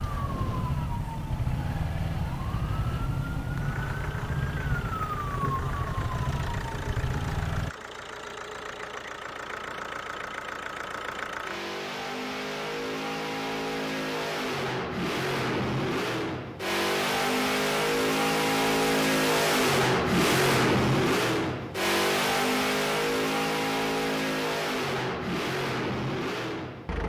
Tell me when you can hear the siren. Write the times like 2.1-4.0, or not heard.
0.0-7.7.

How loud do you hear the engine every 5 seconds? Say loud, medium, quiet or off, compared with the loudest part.
quiet, quiet, medium, loud, loud, medium.